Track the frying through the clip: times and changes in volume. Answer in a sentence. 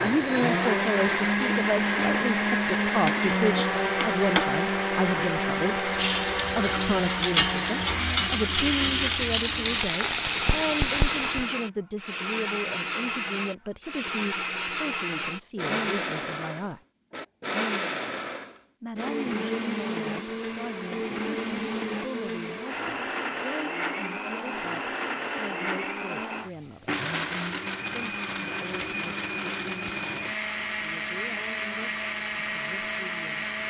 The frying can be heard from 0.0 to 11.5 s, getting louder.